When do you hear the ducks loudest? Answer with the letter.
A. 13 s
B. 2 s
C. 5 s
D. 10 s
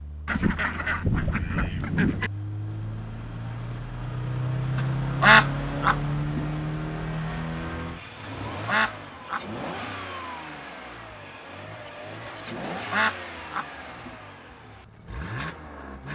C.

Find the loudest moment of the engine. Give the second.
5 s.